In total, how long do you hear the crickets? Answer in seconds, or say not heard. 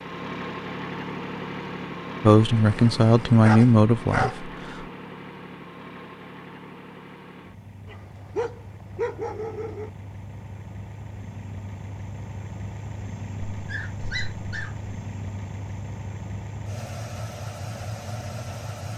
not heard.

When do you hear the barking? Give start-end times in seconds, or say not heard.
2.5-4.4, 7.8-9.9, 13.6-14.8.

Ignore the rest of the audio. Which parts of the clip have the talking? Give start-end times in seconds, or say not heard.
2.2-4.8.